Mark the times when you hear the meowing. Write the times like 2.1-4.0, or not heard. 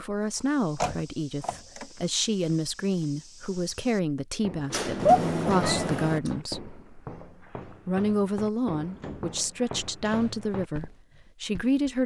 5.0-6.3.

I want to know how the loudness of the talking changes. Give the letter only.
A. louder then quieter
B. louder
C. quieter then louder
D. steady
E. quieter
D.